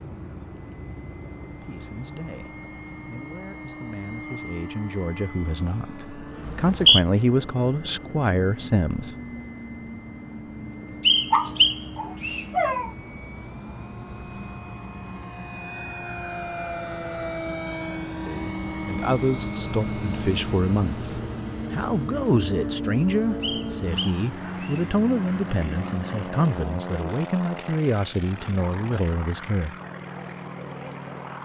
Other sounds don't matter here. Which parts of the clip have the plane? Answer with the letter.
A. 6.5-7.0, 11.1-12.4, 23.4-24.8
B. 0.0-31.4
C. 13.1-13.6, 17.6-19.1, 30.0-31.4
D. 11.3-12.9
B.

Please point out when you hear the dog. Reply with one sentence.
The dog can be heard from 11.3 to 12.9 s.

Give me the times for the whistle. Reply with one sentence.
You can hear the whistle from 6.5 to 7.0 s, from 11.1 to 12.4 s and from 23.4 to 24.8 s.